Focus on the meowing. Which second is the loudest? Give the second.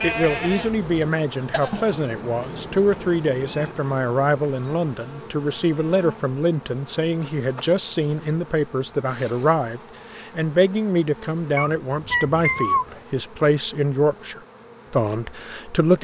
13 s.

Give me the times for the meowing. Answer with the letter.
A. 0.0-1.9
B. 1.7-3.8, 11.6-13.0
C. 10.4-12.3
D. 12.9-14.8
B.